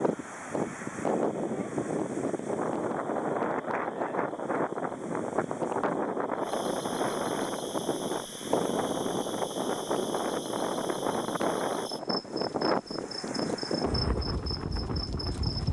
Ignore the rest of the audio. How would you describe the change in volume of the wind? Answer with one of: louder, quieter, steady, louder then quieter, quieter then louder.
steady.